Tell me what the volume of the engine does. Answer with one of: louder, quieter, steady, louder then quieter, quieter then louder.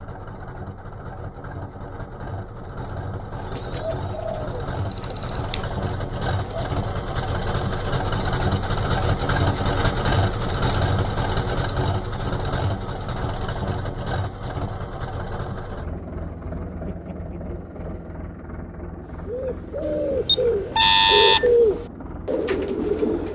louder then quieter.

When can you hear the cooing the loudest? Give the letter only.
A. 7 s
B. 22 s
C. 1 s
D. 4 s
B.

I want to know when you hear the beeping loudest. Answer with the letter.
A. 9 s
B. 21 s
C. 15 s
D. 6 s
B.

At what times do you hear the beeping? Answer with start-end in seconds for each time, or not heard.
4.9-5.6, 19.8-21.6.